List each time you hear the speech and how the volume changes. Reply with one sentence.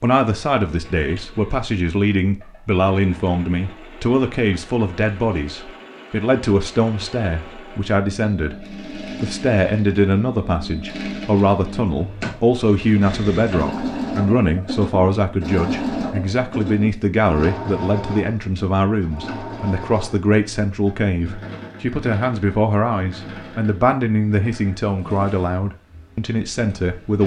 You can hear the speech from 0.0 to 27.2 s, at a steady volume.